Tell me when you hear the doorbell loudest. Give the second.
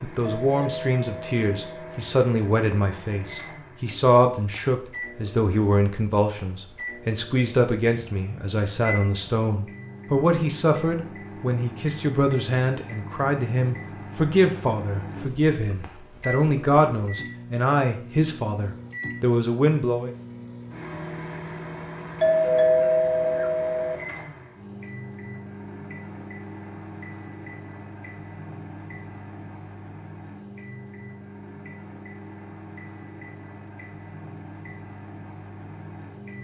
23 s.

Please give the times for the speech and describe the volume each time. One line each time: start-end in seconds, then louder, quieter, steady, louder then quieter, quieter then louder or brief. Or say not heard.
0.0-20.1 steady.